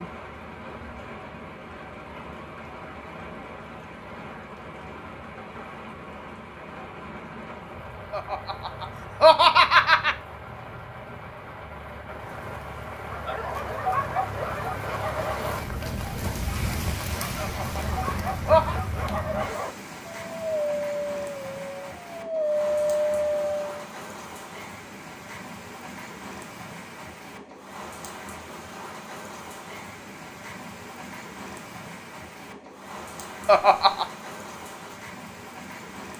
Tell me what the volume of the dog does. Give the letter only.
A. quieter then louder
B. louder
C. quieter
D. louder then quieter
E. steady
A.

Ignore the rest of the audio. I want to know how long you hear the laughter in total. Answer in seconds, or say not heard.
4 s.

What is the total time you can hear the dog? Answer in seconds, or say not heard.
11 s.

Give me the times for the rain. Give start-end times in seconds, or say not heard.
0.0-36.1.